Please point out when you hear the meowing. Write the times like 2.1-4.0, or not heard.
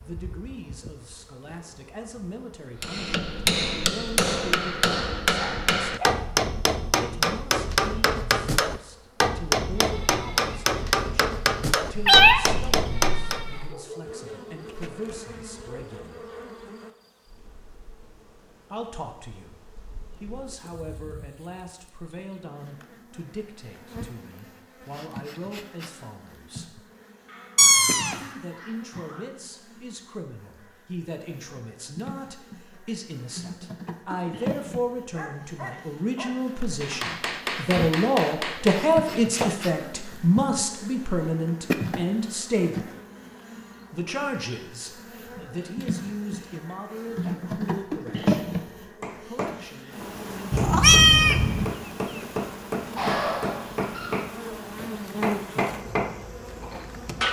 11.9-13.7, 27.6-28.1, 50.5-51.7.